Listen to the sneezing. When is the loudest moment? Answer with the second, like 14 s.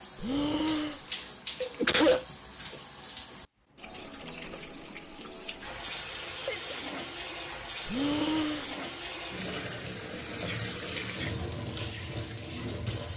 2 s.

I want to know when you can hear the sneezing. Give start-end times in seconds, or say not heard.
1.6-2.2, 5.8-6.8, 10.4-11.3.